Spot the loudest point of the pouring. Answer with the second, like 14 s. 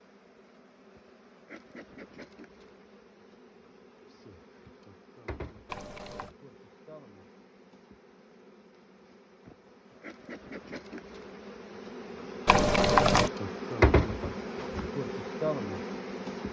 13 s.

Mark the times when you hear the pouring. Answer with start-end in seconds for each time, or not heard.
5.7-6.3, 12.4-13.3.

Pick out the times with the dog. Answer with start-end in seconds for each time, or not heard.
not heard.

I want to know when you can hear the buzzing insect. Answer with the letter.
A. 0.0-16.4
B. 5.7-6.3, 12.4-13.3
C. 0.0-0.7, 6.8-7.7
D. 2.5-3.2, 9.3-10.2
A.